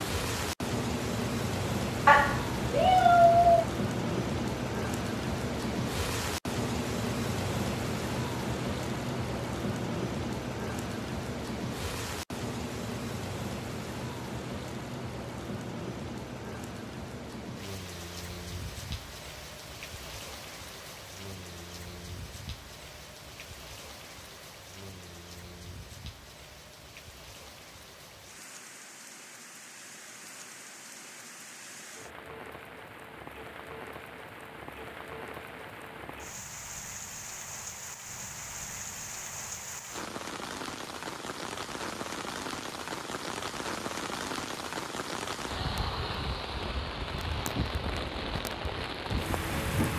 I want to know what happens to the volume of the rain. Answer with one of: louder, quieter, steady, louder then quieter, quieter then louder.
quieter then louder.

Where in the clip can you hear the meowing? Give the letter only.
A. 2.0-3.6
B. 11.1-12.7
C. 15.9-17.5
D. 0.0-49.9
A.